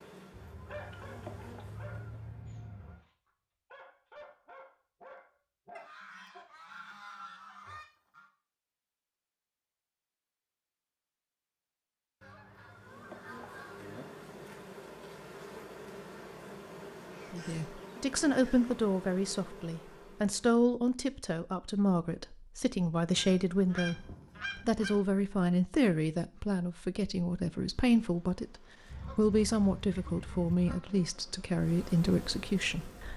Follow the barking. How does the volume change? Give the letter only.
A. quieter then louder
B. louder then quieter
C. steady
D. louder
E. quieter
A.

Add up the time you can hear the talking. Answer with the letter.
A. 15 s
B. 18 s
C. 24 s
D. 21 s
A.